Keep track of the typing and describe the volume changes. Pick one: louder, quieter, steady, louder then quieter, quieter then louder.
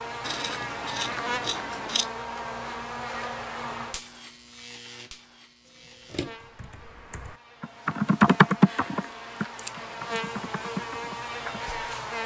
louder then quieter.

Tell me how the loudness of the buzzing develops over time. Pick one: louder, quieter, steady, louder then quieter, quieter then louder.
quieter then louder.